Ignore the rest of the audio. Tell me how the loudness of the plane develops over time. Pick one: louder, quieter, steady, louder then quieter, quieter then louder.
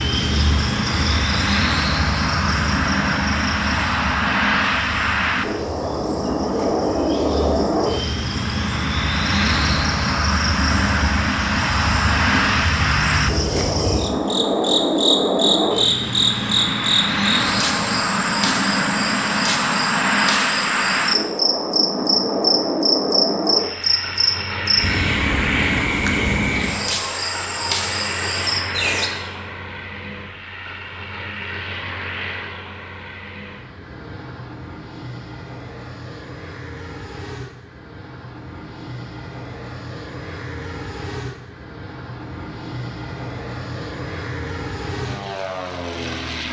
quieter.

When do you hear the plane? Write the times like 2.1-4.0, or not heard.
0.0-46.4.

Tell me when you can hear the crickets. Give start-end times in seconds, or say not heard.
0.0-29.1.